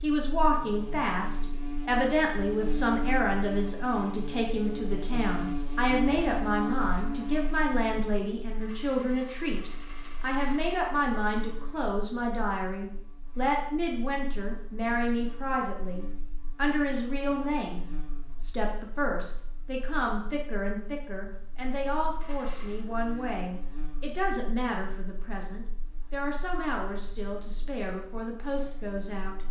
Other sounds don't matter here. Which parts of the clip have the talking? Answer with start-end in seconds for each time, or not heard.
0.0-29.4.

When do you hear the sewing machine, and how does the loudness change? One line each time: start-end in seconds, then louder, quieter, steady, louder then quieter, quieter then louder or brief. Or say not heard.
not heard.